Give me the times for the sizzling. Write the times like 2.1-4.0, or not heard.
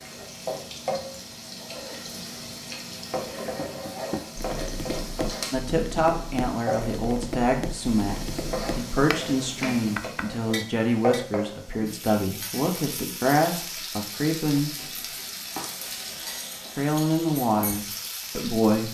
0.0-18.8.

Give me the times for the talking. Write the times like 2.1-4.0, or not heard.
5.5-14.7, 16.8-18.8.